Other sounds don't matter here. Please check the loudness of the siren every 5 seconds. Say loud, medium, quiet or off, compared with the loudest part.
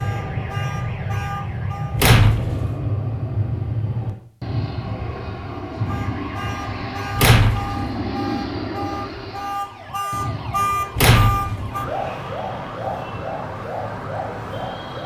medium, medium, loud.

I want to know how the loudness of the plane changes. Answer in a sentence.
The loudness of the plane goes down.